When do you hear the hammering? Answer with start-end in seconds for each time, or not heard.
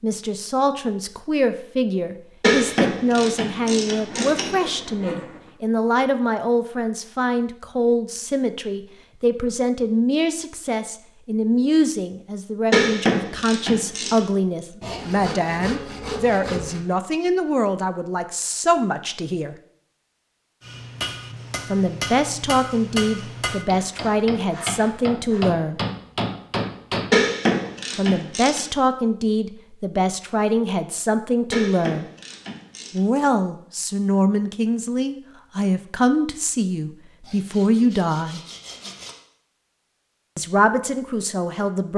20.6-27.8.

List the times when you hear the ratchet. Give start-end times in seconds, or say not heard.
2.4-4.5, 12.7-14.2, 27.1-28.6, 31.5-33.0.